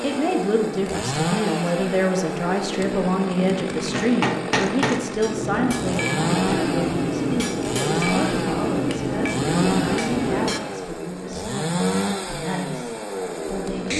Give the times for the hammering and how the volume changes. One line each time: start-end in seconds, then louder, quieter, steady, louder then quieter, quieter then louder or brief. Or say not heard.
3.9-10.6 steady.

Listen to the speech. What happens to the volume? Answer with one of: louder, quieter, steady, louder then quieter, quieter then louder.
quieter.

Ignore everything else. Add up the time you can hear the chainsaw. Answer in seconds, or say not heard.
14 s.